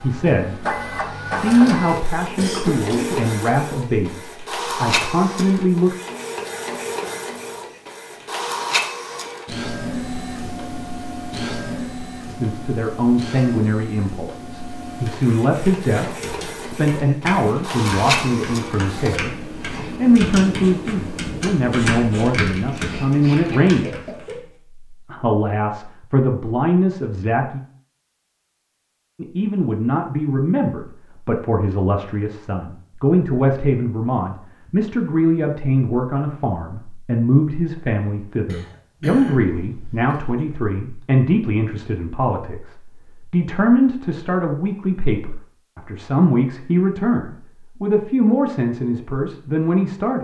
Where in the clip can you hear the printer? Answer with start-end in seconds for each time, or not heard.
0.0-19.2.